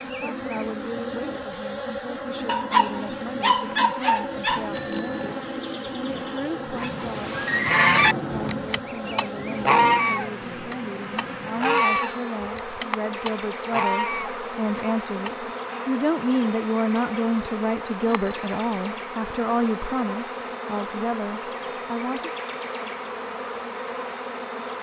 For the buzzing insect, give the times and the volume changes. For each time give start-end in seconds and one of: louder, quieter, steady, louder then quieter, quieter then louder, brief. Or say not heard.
0.0-24.7 steady.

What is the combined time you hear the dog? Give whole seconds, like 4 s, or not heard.
2 s.